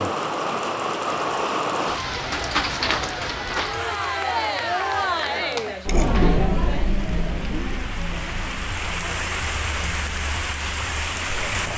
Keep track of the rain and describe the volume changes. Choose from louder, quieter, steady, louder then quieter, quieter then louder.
quieter then louder.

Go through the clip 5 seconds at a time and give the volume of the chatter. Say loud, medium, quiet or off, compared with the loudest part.
loud, loud, quiet.